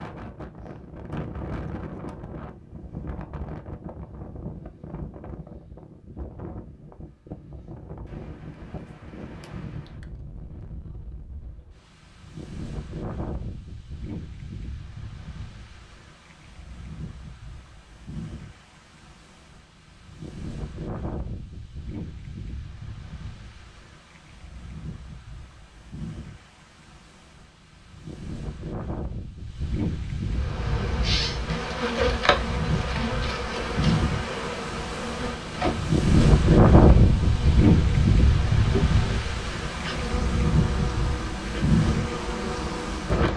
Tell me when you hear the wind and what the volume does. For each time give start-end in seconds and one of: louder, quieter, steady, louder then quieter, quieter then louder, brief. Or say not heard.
0.0-43.3 louder.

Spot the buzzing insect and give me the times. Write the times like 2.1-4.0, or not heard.
30.3-43.3.